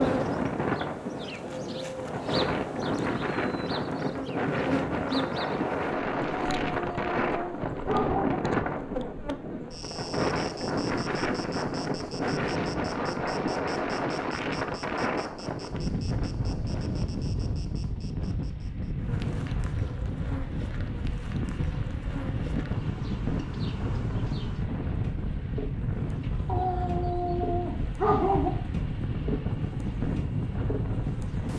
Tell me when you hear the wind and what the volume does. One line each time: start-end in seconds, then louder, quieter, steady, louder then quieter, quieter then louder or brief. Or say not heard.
0.0-31.5 steady.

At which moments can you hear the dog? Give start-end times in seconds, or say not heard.
6.3-8.3, 26.4-28.5.